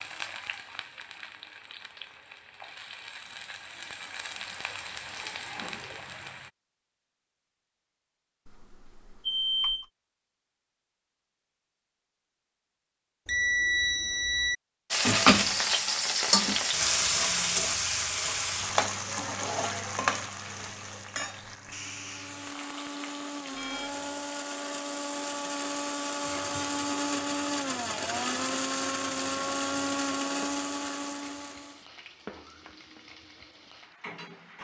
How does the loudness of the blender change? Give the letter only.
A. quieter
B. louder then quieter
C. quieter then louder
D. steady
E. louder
E.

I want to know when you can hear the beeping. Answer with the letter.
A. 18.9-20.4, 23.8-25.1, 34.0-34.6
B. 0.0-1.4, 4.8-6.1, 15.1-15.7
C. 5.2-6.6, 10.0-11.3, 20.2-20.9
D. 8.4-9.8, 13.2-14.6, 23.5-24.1
D.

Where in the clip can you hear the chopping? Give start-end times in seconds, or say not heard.
not heard.